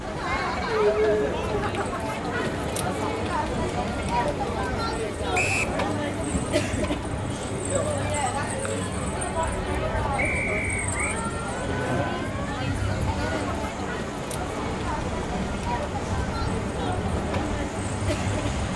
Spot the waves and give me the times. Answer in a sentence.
You can hear the waves from 0.0 to 18.7 s.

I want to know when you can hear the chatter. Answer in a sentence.
You can hear the chatter from 0.0 to 18.7 s.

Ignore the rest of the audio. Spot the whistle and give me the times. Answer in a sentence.
You can hear the whistle from 5.3 to 5.8 s and from 10.2 to 11.2 s.